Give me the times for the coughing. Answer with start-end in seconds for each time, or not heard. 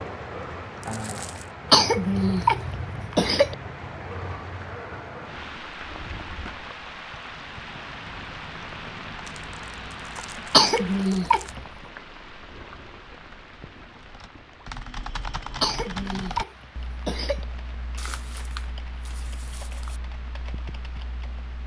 1.7-3.5, 10.5-11.7, 15.6-17.4.